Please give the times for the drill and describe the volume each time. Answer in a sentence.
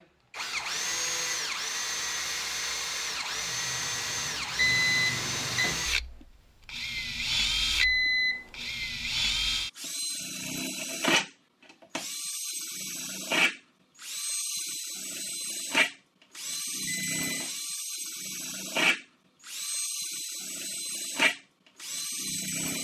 You can hear the drill from 0.3 to 22.7 s, at a steady volume.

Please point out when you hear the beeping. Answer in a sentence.
The beeping can be heard from 4.5 to 5.8 s, from 7.8 to 8.4 s and from 16.9 to 17.4 s.